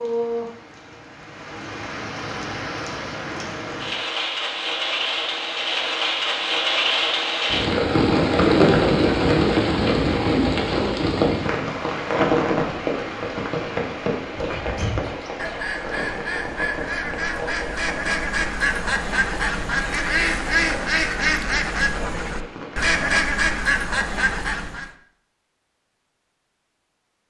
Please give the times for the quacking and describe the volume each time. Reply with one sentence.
The quacking can be heard from 14.6 to 24.9 s, getting louder.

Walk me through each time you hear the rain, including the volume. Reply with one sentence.
The rain can be heard from 0.0 to 23.1 s, getting louder then quieter.